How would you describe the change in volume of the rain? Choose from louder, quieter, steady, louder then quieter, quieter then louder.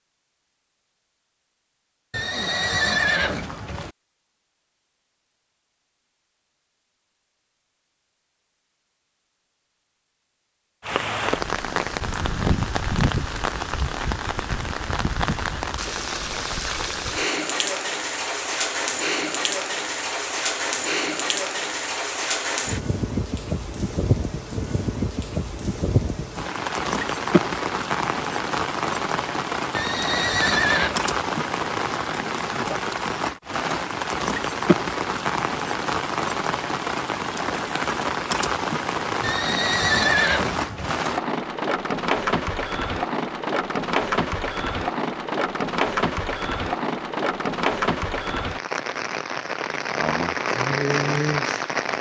steady.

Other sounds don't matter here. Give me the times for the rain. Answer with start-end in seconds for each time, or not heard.
10.8-51.9.